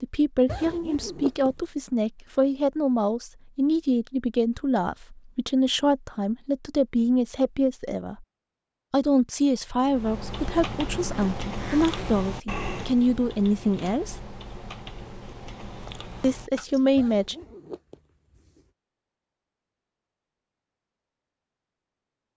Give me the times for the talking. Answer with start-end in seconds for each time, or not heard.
0.0-8.2, 8.9-14.2, 16.2-17.4.